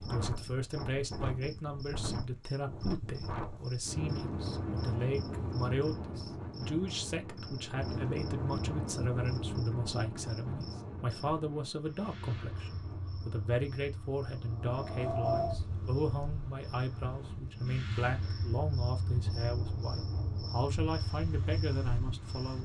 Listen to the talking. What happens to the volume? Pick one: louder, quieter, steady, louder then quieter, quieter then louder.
steady.